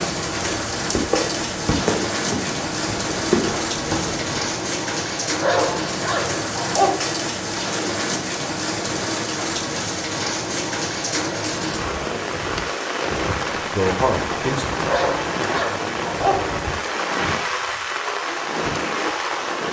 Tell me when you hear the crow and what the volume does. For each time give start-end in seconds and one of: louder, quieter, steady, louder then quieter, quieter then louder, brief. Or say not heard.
not heard.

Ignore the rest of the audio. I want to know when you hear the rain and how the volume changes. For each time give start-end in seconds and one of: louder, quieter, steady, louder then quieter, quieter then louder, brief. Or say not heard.
0.0-19.6 steady.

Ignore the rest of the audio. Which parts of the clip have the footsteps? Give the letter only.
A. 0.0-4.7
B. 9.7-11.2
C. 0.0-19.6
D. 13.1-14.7
A.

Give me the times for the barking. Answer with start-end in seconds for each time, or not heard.
5.4-7.0, 14.8-16.5.